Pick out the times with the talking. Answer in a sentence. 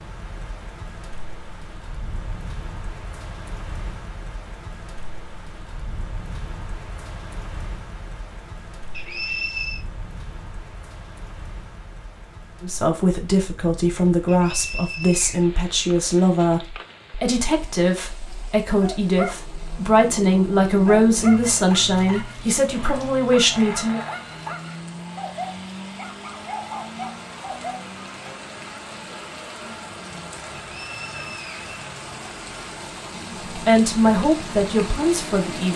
You can hear the talking from 12.6 to 24.0 s and from 33.5 to 35.7 s.